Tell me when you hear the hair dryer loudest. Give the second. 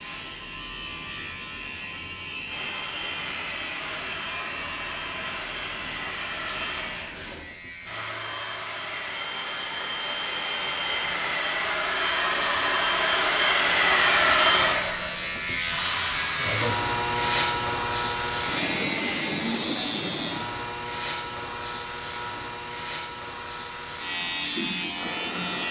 14 s.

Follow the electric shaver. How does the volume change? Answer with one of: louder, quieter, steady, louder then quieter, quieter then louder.
louder then quieter.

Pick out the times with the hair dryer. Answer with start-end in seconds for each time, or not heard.
2.5-25.6.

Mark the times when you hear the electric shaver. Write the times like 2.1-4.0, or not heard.
0.0-25.6.